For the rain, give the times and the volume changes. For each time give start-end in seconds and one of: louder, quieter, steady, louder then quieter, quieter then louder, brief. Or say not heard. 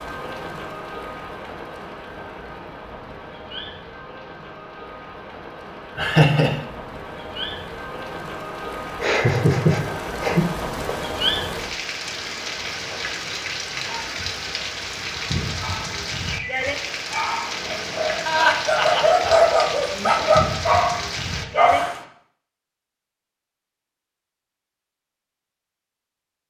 0.0-22.1 louder.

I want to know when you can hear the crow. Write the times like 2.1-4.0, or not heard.
not heard.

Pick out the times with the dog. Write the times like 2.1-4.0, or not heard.
15.6-21.9.